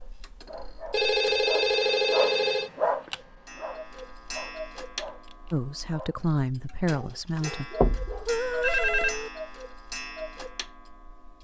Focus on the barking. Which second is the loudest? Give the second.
3 s.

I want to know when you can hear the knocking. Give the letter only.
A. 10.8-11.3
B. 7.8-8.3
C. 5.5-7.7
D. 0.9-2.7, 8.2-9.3
B.